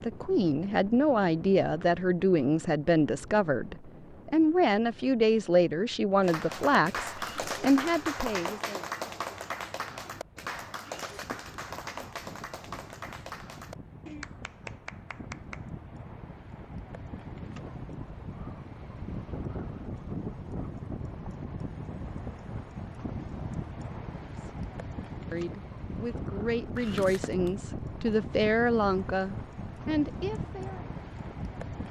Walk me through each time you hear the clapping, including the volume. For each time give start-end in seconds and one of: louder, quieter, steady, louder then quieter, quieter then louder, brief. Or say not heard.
6.2-15.7 quieter.